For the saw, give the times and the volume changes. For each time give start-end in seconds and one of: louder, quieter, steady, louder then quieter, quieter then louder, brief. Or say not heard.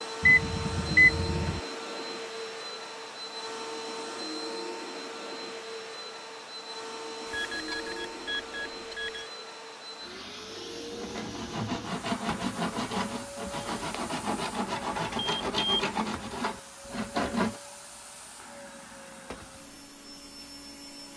10.9-17.6 steady.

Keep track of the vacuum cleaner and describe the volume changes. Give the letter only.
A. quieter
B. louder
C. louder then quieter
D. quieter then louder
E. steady
A.